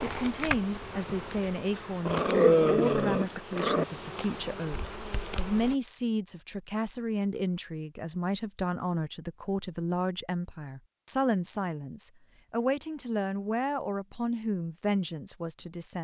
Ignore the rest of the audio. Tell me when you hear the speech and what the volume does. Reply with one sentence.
You can hear the speech from 0.0 to 16.0 s, at a steady volume.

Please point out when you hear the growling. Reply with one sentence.
You can hear the growling from 2.0 to 3.9 s.